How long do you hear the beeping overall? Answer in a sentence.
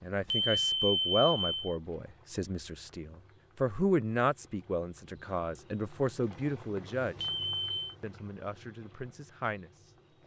You can hear the beeping for 2 seconds altogether.